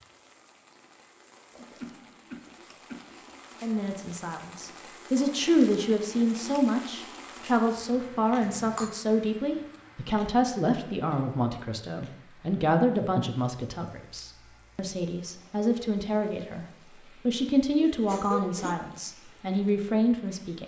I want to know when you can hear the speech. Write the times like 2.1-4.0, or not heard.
3.6-20.6.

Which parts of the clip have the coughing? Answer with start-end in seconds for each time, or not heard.
1.5-3.3, 8.4-8.9, 17.8-18.8.